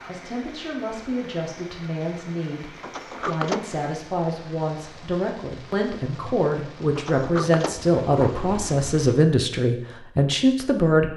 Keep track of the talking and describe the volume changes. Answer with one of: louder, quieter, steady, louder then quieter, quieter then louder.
louder.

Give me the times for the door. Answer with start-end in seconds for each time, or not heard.
2.8-3.8, 7.0-8.7.